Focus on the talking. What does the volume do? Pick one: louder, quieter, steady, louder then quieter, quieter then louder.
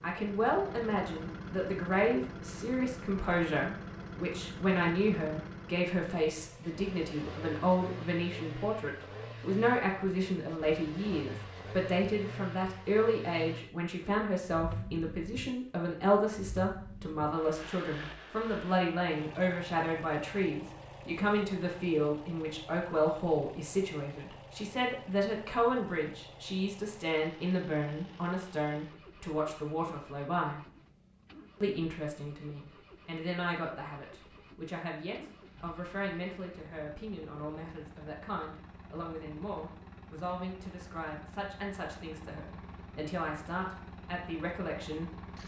quieter.